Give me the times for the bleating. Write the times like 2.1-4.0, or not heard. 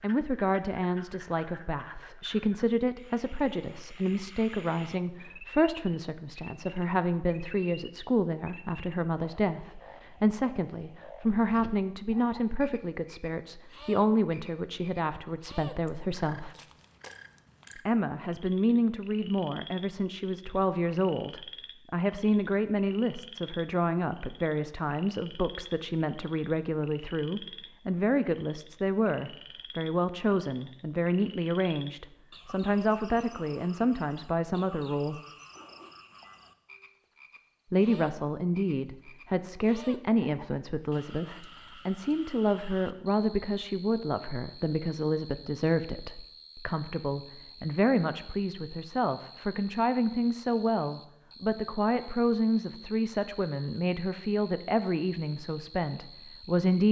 not heard.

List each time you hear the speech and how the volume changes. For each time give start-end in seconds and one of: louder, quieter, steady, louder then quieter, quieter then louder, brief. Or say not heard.
0.0-16.6 steady
17.8-35.2 steady
37.7-56.8 steady.